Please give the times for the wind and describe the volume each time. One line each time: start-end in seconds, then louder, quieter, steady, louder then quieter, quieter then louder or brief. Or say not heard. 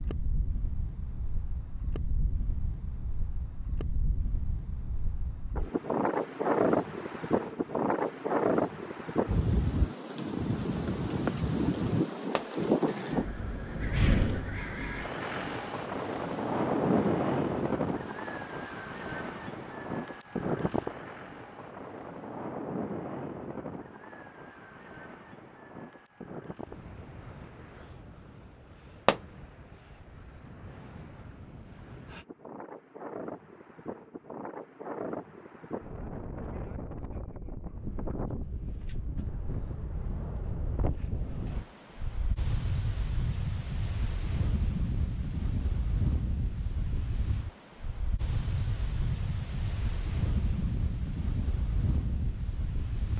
0.0-53.1 quieter then louder.